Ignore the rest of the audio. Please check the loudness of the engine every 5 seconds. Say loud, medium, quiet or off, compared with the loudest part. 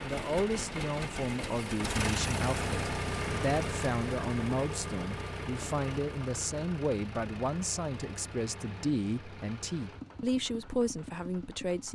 loud, medium, medium.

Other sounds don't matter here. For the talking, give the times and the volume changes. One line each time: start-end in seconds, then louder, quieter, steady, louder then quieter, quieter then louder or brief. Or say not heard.
0.0-11.9 steady.